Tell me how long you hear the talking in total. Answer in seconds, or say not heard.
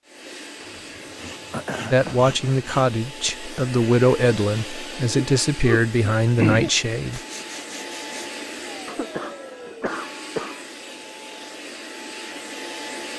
5 s.